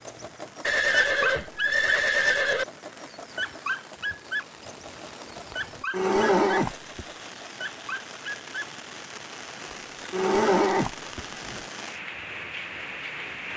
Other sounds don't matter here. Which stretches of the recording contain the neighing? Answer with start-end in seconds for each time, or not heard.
0.6-2.6, 5.5-7.0, 9.7-11.7.